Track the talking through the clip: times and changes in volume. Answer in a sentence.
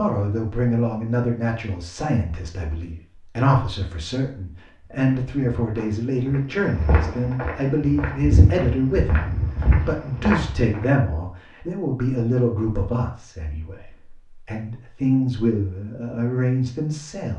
You can hear the talking from 0.0 to 17.3 s, at a steady volume.